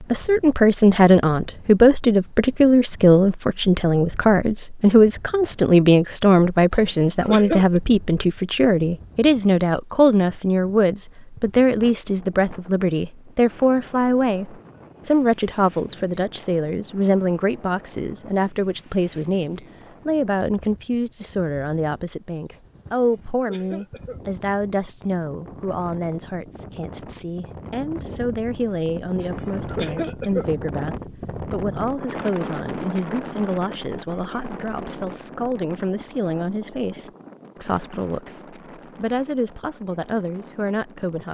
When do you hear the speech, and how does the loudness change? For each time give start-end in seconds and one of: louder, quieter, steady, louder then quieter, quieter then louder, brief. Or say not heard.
0.0-41.2 quieter.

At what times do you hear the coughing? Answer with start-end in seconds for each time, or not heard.
6.7-7.8, 22.9-24.2, 29.2-30.5.